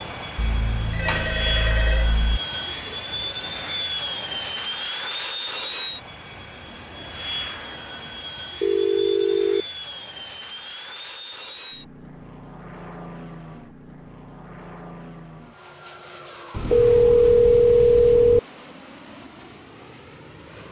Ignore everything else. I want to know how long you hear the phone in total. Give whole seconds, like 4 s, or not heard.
5 s.